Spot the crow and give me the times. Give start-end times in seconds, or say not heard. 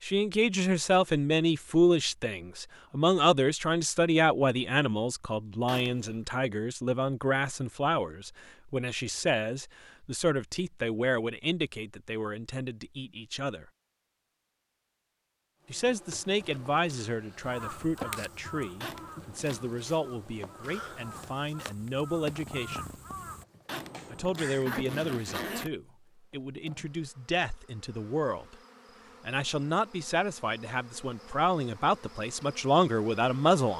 17.4-24.6.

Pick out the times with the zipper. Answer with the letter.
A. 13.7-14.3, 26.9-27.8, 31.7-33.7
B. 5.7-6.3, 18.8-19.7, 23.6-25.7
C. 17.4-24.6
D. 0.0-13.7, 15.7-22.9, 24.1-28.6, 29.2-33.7
B.